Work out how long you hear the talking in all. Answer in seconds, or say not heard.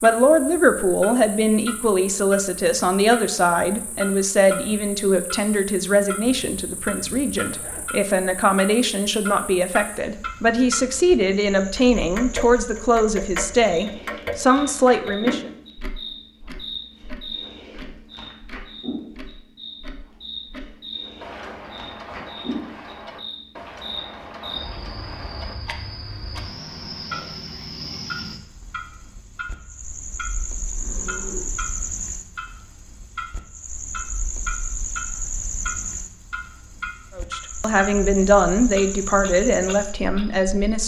19 s.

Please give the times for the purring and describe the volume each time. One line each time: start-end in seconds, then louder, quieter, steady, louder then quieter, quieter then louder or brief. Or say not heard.
not heard.